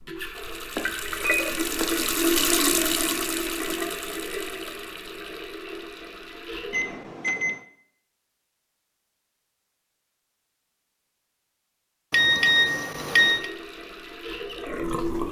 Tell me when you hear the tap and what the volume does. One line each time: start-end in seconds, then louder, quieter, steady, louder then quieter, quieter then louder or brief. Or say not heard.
0.0-7.0 louder then quieter
13.2-15.2 brief.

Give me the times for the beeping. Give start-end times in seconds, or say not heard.
0.8-1.9, 6.7-7.6, 12.1-13.5.